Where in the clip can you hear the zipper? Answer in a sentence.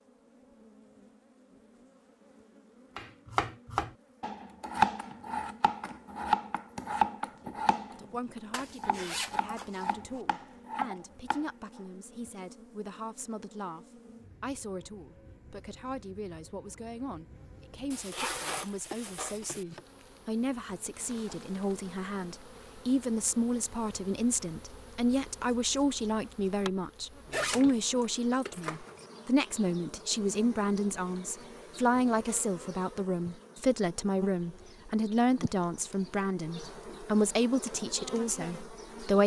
The zipper can be heard from 8.5 to 10.2 s, from 17.9 to 19.6 s and from 27.3 to 29.1 s.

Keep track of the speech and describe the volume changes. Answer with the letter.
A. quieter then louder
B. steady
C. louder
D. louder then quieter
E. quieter
C.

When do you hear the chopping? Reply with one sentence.
You can hear the chopping from 3.0 to 11.4 s.